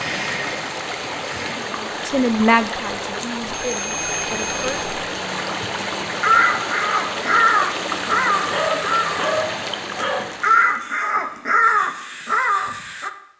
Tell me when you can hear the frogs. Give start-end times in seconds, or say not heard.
not heard.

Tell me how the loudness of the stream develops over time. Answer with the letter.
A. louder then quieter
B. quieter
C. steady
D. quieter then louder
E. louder
C.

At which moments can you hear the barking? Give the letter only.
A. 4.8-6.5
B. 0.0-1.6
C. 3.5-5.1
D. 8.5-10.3
D.